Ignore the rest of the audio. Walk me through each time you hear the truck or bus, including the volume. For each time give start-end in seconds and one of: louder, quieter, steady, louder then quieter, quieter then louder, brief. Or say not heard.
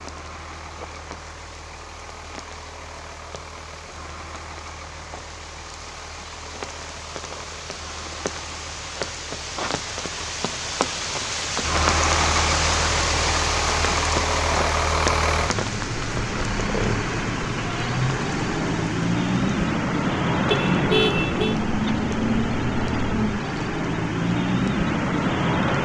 0.0-25.8 louder.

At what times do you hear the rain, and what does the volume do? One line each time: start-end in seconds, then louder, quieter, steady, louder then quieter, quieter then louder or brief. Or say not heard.
0.0-25.8 louder then quieter.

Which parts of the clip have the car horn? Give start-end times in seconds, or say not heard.
20.5-21.6.